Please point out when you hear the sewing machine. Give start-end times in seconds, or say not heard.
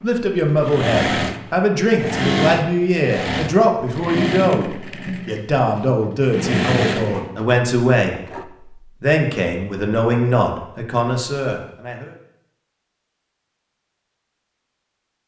0.0-8.4.